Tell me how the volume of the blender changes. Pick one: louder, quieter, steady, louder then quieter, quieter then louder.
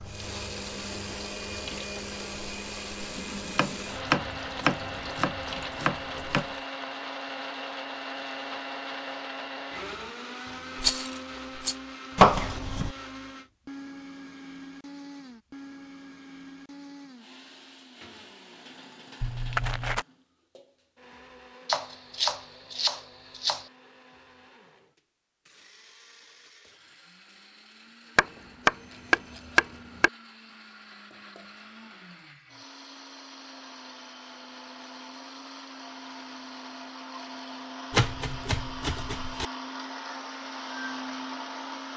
quieter then louder.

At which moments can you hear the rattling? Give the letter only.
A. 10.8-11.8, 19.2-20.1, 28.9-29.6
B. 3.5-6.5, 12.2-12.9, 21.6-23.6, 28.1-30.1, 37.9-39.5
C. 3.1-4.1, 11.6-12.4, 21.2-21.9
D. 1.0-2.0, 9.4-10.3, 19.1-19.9
A.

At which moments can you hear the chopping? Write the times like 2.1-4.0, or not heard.
3.5-6.5, 12.2-12.9, 21.6-23.6, 28.1-30.1, 37.9-39.5.